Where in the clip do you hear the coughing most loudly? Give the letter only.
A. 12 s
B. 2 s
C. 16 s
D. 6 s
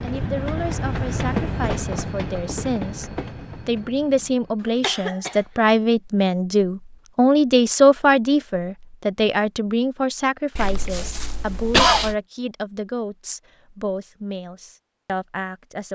A.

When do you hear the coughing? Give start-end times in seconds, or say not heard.
4.6-5.5, 10.6-12.2.